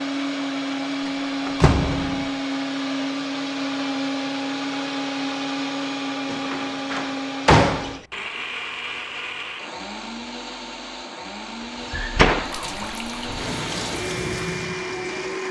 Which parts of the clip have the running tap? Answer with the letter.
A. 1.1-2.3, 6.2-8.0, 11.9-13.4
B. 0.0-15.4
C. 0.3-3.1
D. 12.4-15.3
D.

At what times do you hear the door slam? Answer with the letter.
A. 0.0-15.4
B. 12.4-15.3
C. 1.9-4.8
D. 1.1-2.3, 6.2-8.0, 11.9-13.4
D.